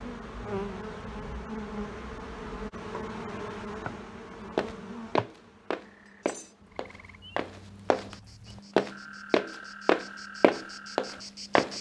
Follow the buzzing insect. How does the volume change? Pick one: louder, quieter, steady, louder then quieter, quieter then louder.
quieter then louder.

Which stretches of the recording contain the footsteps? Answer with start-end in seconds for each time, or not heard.
4.5-8.2, 8.8-11.7.